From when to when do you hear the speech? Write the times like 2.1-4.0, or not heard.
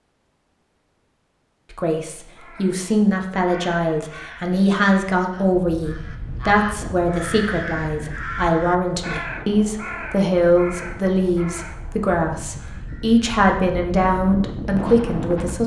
1.7-15.6.